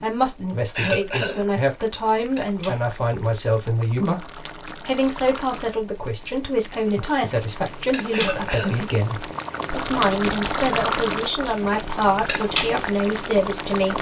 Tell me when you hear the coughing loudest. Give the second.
1 s.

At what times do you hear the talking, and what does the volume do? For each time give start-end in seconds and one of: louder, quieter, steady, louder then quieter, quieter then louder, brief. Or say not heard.
0.0-13.9 steady.